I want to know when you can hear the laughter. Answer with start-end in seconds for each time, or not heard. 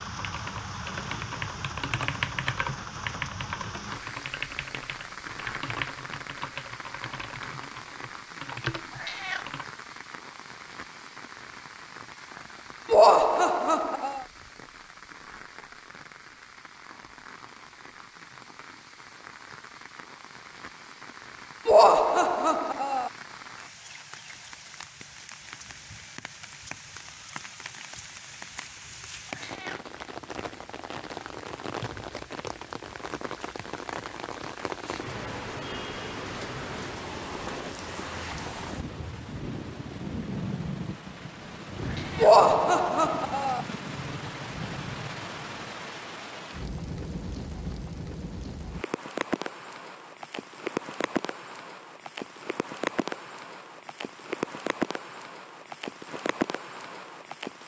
12.9-14.2, 21.6-23.1, 42.1-43.6.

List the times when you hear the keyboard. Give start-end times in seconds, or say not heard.
0.1-9.7.